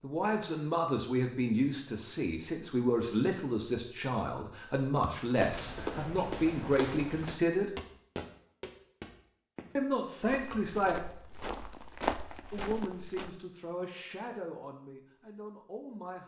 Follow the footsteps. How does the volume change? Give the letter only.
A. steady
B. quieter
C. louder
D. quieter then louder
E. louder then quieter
D.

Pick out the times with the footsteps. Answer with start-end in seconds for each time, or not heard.
5.0-13.3.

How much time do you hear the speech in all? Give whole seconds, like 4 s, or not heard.
13 s.